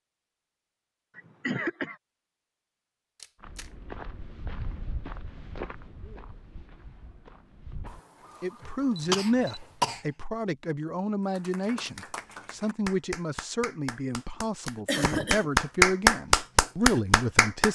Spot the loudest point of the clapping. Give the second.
16 s.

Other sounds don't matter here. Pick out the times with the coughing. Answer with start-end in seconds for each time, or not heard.
1.1-1.9, 8.6-10.0, 14.8-15.4.